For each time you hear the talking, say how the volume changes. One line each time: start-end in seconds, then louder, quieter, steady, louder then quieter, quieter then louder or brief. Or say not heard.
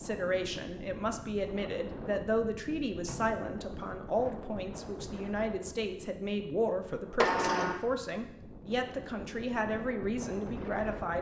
0.0-11.1 steady.